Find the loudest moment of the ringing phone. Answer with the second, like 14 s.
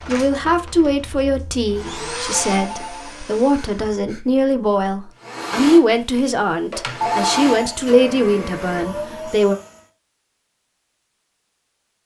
7 s.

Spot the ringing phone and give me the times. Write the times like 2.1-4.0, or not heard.
2.5-4.2, 7.0-7.8.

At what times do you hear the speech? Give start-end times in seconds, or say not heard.
0.1-9.6.